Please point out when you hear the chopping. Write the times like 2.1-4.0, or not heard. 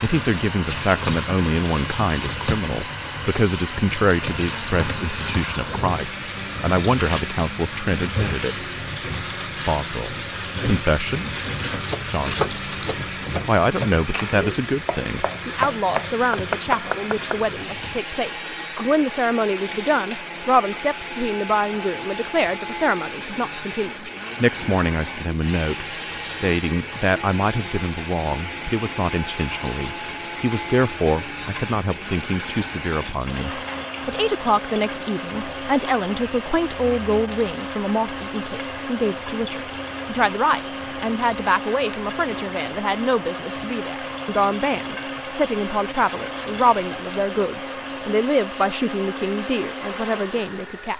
11.7-17.4.